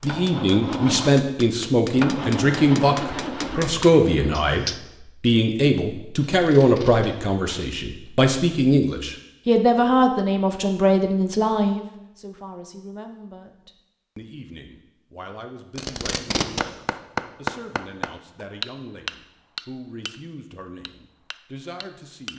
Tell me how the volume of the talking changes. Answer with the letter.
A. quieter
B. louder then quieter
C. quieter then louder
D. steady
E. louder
A.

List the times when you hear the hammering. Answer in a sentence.
The hammering can be heard from 0.0 to 4.8 s, from 16.4 to 20.2 s and from 20.9 to 22.3 s.